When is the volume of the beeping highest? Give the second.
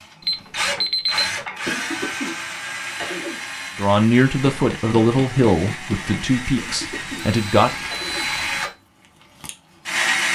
1 s.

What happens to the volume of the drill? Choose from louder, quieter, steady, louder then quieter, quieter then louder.
quieter then louder.